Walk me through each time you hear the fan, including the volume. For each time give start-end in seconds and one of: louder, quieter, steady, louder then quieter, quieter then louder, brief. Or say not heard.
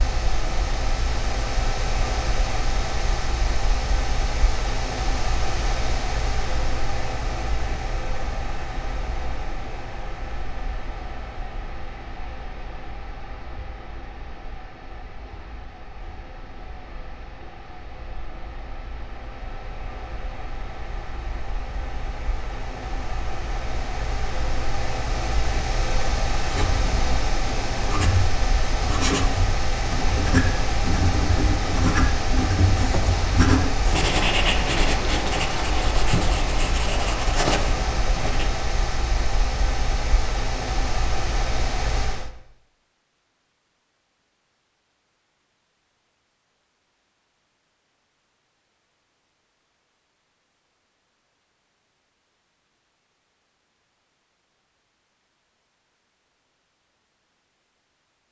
0.0-42.3 quieter then louder.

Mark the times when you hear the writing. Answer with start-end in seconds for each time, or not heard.
26.4-38.5.